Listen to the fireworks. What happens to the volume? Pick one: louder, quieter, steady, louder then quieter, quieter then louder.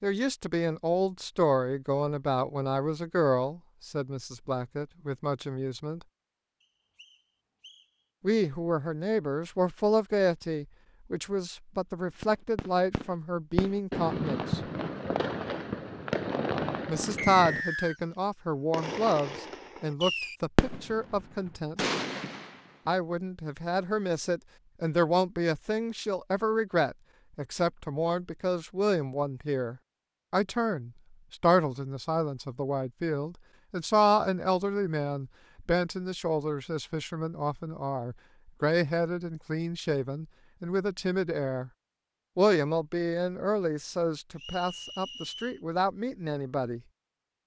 steady.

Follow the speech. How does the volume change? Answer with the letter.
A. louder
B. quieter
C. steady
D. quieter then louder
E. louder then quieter
C.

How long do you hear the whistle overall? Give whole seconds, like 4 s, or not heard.
3 s.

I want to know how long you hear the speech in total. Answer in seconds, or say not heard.
41 s.